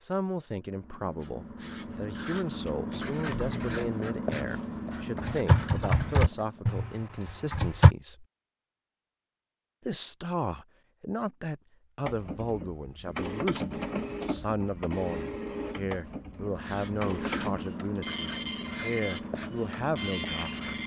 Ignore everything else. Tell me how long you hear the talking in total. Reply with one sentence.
The talking can be heard for 19 seconds in total.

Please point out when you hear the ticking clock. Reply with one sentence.
The ticking clock can't be heard in this clip.